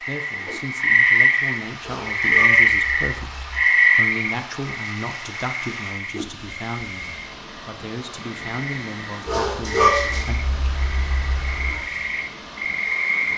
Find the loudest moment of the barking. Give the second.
10 s.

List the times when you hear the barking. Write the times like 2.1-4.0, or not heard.
1.8-3.6, 9.2-11.8.